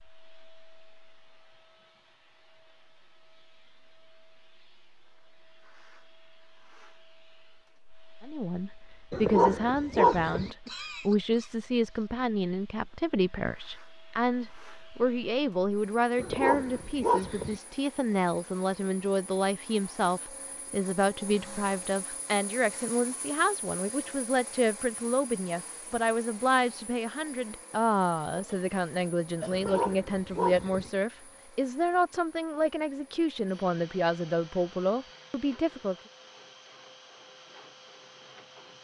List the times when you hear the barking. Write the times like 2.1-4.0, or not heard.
9.1-10.5, 16.1-17.6, 29.5-30.9.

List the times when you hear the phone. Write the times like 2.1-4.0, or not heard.
not heard.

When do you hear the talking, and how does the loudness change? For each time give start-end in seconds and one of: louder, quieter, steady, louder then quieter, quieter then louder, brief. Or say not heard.
8.2-36.0 steady.